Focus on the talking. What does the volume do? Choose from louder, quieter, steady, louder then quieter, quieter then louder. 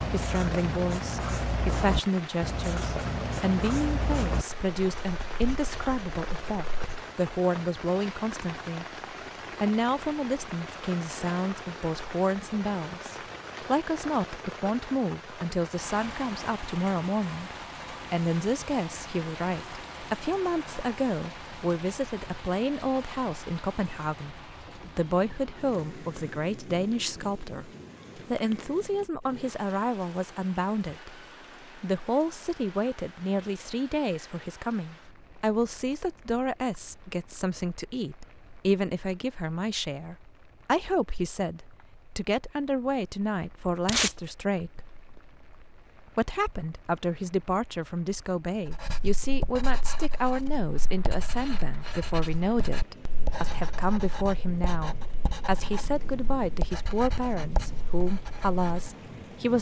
steady.